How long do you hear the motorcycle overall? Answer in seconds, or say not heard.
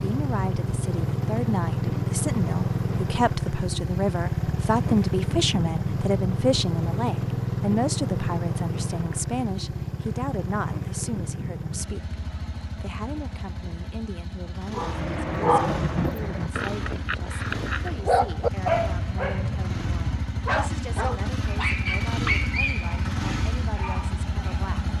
25 s.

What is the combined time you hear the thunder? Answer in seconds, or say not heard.
2 s.